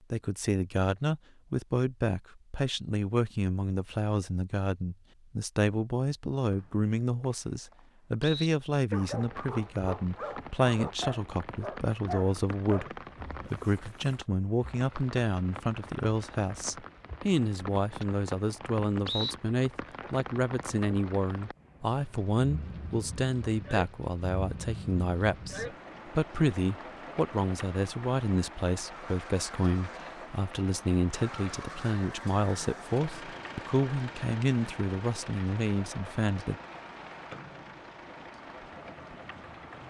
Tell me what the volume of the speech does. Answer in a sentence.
The loudness of the speech stays about the same.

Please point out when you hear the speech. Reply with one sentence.
The speech can be heard from 0.1 to 36.5 s.